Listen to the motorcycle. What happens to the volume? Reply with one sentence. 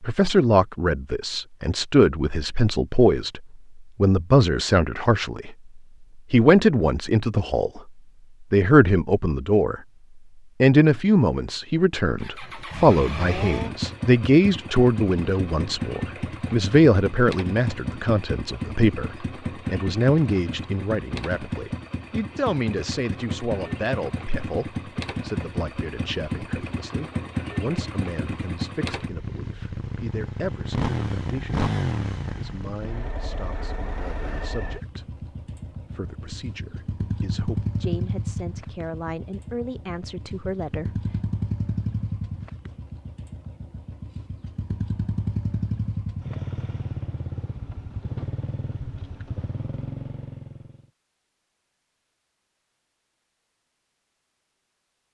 The volume of the motorcycle stays about the same.